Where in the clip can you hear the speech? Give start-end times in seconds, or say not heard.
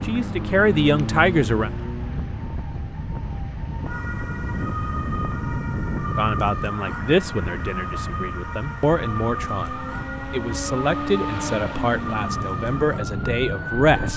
0.0-1.7, 6.2-14.1.